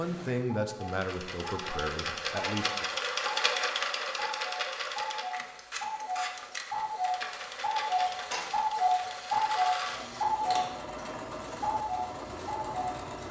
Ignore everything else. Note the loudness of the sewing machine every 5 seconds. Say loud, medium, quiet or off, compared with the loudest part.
loud, medium, medium.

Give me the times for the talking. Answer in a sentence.
The talking can be heard from 0.0 to 2.9 s.